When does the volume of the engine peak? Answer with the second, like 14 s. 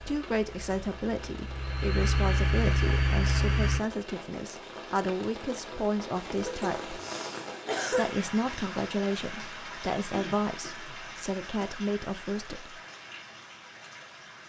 3 s.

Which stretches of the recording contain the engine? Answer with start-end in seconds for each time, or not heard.
0.0-3.8.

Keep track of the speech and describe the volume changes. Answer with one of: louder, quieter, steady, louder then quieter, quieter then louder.
steady.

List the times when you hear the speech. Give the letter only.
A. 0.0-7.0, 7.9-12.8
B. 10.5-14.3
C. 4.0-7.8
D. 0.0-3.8
A.